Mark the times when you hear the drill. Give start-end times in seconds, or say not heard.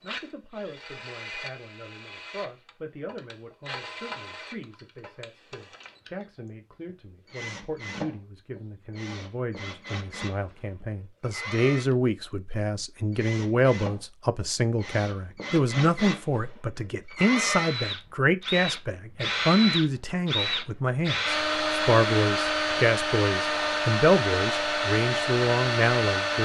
0.0-26.4.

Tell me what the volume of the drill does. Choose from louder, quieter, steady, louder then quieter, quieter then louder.
louder.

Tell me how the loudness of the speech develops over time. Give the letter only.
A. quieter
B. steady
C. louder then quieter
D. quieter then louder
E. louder
E.